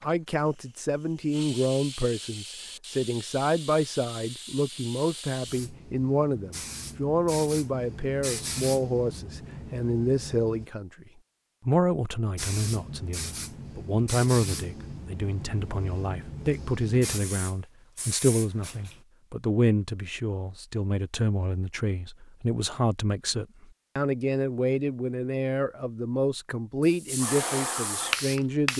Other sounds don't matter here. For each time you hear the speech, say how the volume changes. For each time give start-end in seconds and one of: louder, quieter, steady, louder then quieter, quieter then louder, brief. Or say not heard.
0.0-11.1 steady
11.7-28.7 steady.